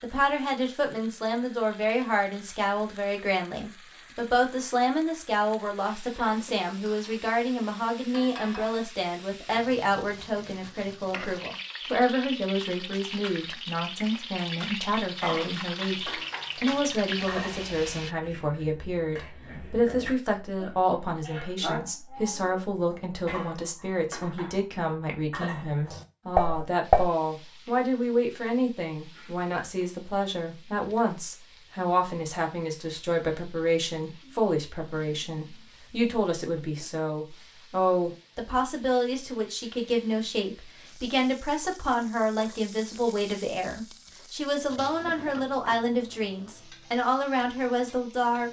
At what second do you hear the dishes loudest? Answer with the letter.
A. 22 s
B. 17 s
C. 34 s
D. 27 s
D.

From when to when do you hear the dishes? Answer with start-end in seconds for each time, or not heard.
15.2-27.1.